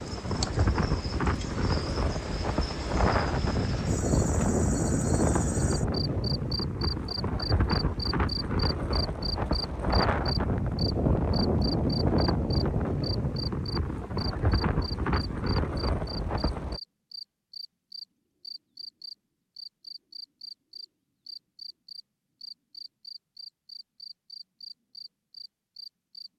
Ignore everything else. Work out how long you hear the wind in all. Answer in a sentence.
The wind can be heard for 17 seconds in total.